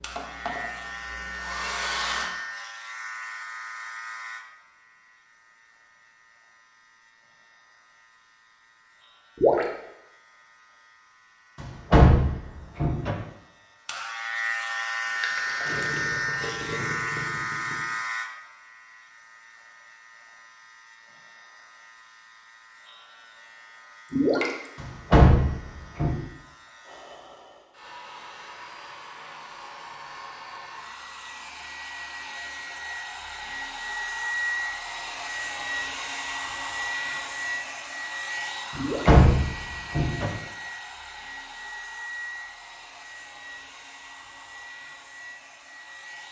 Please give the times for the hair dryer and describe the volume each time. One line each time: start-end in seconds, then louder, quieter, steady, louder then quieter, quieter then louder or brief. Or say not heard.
0.0-2.3 brief
26.8-46.2 louder then quieter.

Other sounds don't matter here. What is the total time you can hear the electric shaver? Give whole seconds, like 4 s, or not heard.
27 s.